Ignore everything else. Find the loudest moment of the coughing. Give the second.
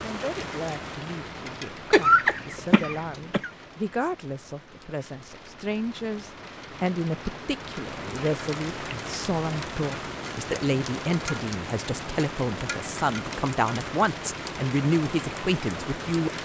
2 s.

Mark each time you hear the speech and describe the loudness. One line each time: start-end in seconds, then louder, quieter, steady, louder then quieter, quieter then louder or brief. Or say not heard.
0.0-16.4 louder.